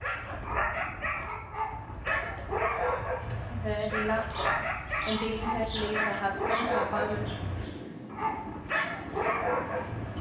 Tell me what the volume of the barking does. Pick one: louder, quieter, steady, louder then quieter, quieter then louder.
steady.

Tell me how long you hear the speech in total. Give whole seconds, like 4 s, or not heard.
4 s.